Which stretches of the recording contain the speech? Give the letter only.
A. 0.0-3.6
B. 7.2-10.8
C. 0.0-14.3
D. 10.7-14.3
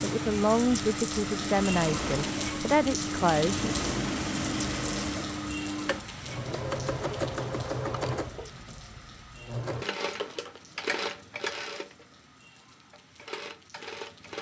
A.